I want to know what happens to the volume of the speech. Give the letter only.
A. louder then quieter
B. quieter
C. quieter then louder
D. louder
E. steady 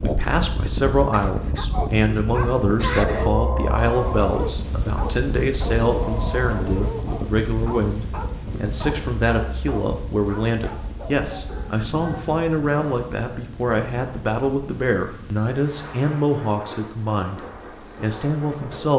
E.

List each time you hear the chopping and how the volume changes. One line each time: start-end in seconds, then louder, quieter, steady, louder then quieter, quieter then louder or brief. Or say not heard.
not heard.